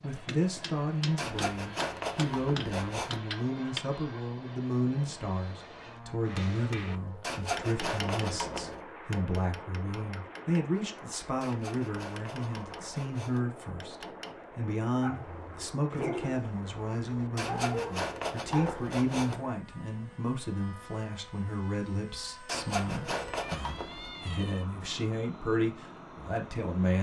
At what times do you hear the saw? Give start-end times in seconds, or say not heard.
1.1-3.2, 7.2-8.8, 11.4-13.4, 17.4-19.4, 22.4-24.1.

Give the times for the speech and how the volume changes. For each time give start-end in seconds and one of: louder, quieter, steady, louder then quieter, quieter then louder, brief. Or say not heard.
0.0-26.9 steady.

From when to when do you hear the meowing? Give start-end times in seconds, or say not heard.
23.4-24.6.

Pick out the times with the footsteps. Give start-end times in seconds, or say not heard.
not heard.